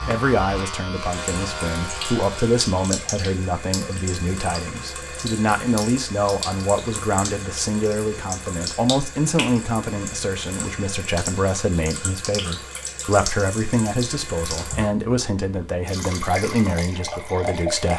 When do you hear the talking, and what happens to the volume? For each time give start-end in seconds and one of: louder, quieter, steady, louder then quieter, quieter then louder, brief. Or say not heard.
0.0-17.9 steady.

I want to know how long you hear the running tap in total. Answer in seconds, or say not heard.
18 s.